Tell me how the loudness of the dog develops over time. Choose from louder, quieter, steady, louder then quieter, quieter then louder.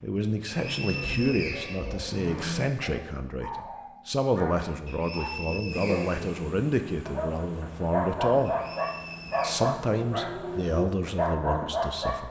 louder.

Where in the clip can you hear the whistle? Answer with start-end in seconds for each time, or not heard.
0.5-2.4, 4.8-6.3, 8.4-9.6.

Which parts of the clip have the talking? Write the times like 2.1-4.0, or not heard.
0.0-8.6, 9.4-12.2.